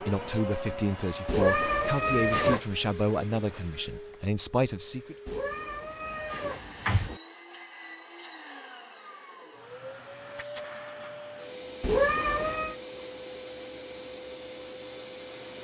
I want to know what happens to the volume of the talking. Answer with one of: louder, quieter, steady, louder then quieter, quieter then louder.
steady.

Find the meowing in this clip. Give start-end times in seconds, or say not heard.
1.2-2.6, 5.2-7.2, 11.8-12.8.